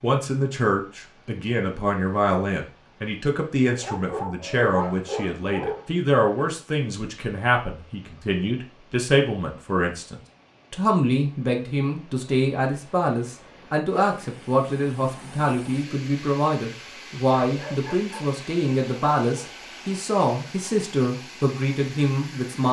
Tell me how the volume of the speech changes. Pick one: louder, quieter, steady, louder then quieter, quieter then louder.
steady.